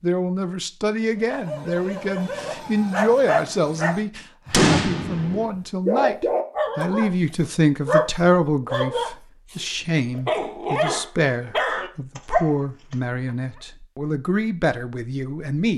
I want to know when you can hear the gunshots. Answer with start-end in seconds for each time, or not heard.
4.5-5.5.